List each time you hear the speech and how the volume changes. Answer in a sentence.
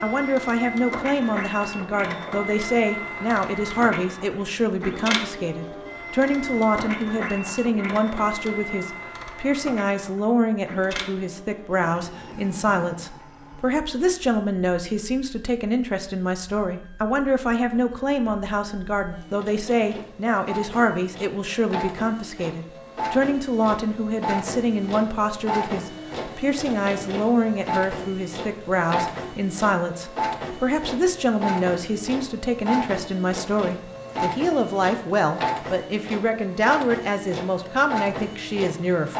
You can hear the speech from 0.0 to 39.1 s, at a steady volume.